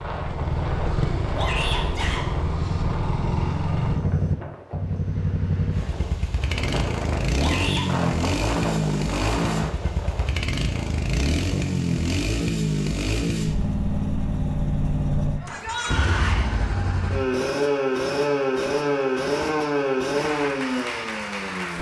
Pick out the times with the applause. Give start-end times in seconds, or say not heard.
20.1-21.7.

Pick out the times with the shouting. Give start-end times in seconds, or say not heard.
1.4-2.2, 7.3-7.9, 15.4-16.4.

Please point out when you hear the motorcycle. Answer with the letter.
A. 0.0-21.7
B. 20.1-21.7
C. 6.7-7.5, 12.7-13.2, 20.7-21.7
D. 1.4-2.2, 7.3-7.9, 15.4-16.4
A.